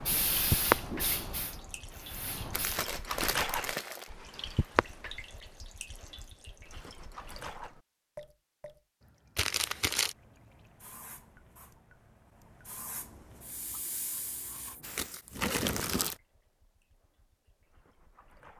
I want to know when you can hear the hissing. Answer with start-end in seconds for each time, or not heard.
0.0-2.8, 9.9-15.2.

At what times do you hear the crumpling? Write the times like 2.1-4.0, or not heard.
2.5-4.1, 9.3-10.2, 14.9-16.1.